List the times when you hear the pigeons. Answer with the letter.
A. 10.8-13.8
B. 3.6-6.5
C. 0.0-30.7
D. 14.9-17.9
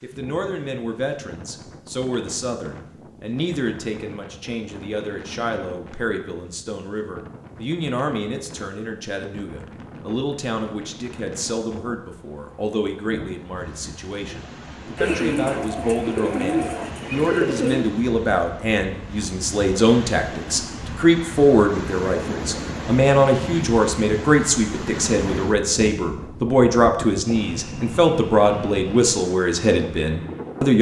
D.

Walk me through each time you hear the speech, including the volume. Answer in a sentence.
The speech can be heard from 0.0 to 30.7 s, getting louder.